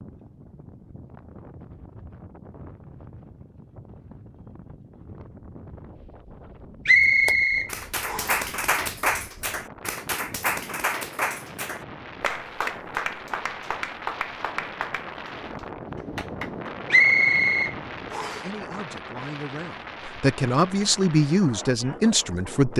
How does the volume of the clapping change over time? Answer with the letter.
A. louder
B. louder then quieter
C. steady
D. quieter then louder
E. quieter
E.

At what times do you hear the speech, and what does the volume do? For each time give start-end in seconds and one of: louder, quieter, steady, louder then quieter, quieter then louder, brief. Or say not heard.
18.3-22.7 louder.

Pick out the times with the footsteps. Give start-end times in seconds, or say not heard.
not heard.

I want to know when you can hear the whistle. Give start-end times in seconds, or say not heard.
6.8-8.4, 16.9-18.4.